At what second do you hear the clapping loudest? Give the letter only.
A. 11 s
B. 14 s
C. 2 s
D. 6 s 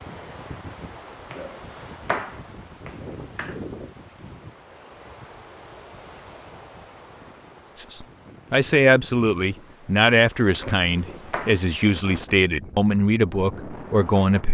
C.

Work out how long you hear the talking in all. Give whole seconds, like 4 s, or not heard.
7 s.